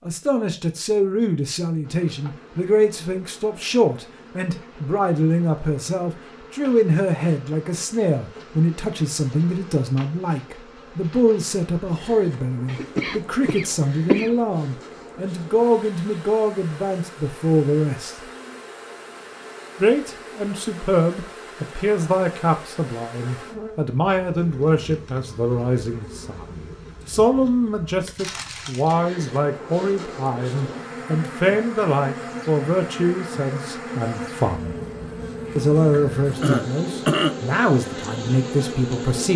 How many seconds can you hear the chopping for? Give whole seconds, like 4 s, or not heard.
not heard.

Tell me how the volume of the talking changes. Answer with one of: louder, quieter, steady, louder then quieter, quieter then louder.
steady.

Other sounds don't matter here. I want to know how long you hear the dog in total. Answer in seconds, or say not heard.
not heard.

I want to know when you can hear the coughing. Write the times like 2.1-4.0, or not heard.
12.7-14.3, 36.4-37.4.